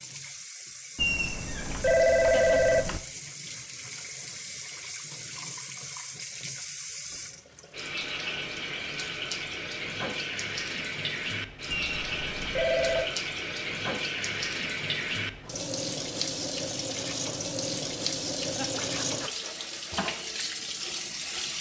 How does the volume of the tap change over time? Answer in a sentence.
The loudness of the tap goes up.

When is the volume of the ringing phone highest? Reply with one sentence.
The volume of the ringing phone peaks at 2 seconds.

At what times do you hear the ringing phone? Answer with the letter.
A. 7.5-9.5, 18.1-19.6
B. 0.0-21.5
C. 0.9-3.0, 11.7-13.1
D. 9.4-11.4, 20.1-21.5
C.